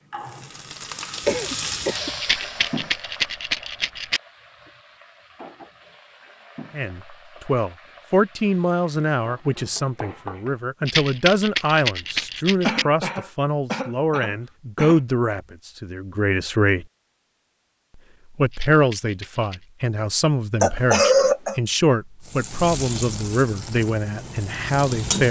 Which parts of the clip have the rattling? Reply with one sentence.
You can hear the rattling from 2.2 to 4.2 s, from 10.8 to 12.8 s and from 18.5 to 19.6 s.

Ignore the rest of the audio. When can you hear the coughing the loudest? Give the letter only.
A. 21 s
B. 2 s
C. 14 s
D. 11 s
A.